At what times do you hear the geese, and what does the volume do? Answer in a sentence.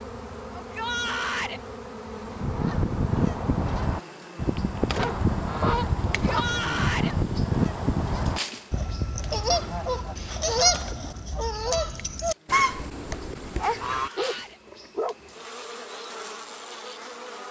You can hear the geese from 2.2 to 14.4 s, at a steady volume.